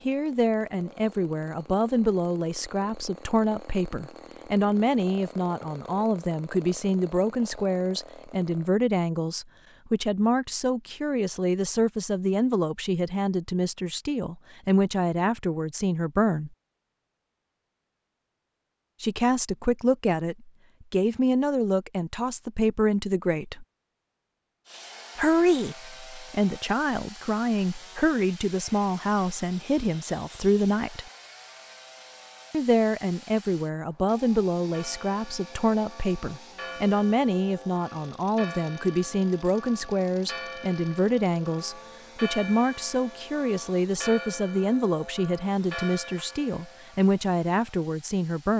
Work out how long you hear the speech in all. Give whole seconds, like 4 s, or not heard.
43 s.